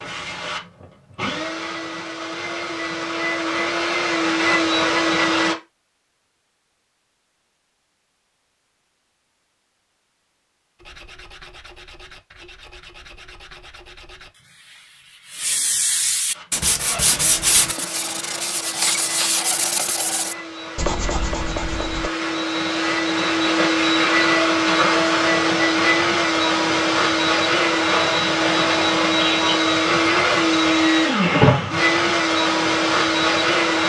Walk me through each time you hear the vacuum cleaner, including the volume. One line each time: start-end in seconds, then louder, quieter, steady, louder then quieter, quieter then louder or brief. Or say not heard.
0.0-5.5 louder
16.3-33.8 louder.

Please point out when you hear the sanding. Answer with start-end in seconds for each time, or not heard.
10.8-22.1.